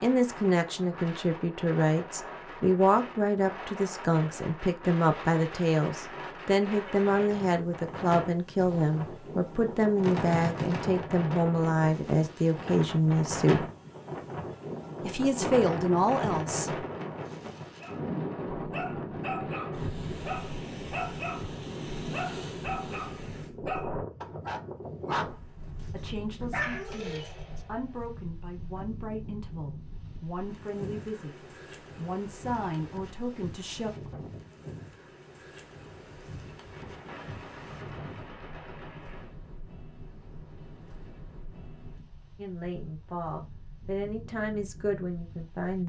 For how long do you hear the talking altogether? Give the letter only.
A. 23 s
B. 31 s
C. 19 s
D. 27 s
D.